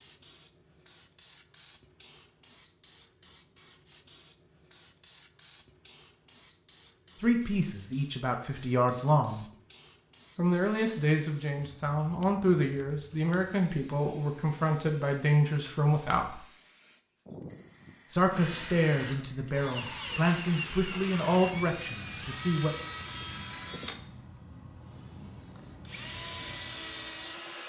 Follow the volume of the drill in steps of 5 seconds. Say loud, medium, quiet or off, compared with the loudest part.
off, off, off, loud, loud, loud.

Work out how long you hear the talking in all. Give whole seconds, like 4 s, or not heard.
13 s.